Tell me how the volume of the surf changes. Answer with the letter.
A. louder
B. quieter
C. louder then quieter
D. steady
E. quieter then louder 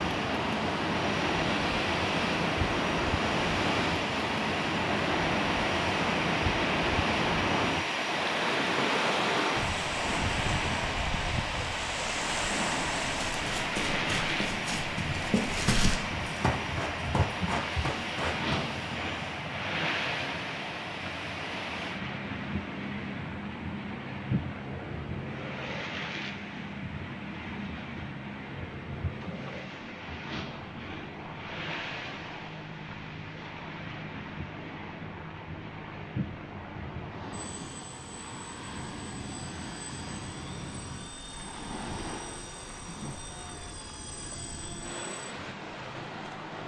B.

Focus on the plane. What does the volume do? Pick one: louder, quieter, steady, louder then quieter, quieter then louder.
quieter.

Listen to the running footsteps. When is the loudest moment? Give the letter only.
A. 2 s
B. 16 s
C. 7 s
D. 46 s
B.